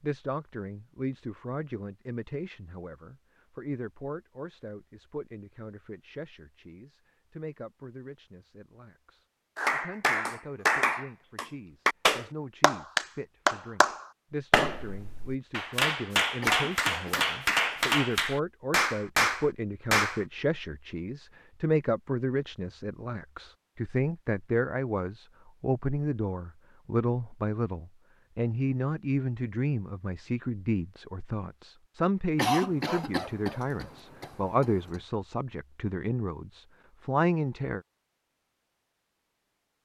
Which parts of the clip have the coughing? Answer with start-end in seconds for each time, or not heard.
16.4-17.9, 32.4-35.0.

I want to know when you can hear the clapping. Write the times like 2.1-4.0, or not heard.
9.6-20.2.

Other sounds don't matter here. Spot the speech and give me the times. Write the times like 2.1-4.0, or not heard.
0.0-37.8.